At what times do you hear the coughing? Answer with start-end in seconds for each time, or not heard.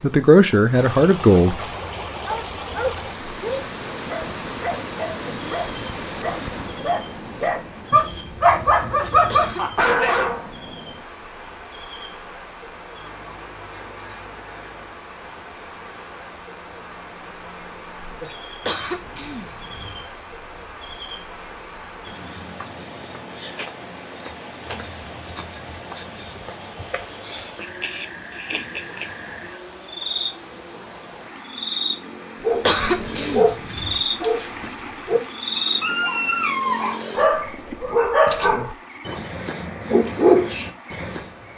9.2-10.2, 18.6-20.1, 32.6-34.0.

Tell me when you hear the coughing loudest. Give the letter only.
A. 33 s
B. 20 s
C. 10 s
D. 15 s
A.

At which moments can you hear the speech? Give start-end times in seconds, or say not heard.
0.0-1.6.